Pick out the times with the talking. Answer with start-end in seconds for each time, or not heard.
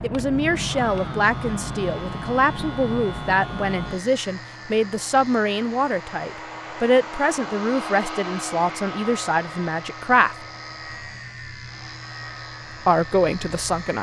0.0-10.3, 12.8-13.9.